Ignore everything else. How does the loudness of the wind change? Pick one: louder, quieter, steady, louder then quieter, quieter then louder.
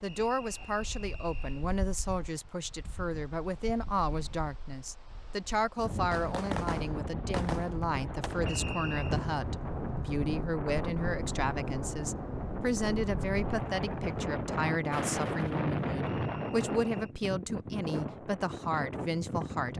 louder.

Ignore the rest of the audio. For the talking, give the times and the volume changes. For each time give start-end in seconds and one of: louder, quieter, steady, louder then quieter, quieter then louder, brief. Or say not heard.
0.0-19.7 steady.